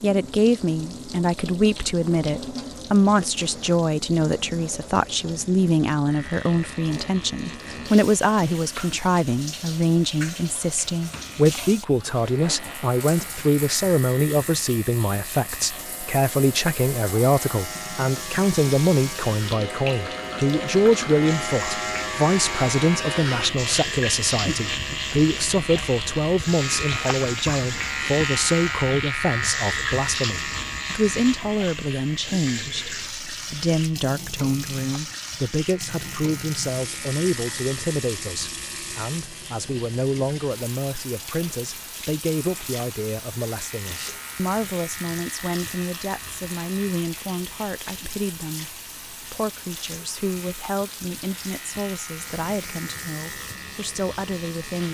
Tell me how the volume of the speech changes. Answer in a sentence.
The loudness of the speech goes down.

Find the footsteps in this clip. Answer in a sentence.
The footsteps can't be heard in this clip.